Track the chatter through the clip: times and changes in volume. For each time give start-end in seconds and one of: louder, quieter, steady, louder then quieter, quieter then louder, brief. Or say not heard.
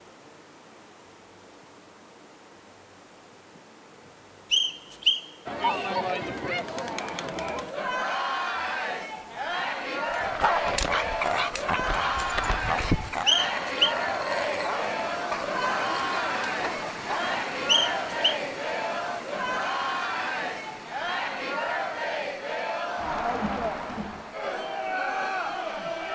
5.5-26.1 steady.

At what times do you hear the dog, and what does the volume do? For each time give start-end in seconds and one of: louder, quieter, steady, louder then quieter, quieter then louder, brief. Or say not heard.
10.0-17.4 quieter.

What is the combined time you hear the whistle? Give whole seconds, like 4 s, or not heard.
3 s.